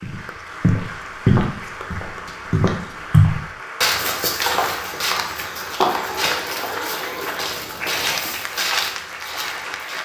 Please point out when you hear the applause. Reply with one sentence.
The applause can be heard from 0.0 to 10.0 s.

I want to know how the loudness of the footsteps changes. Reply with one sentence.
The loudness of the footsteps goes down.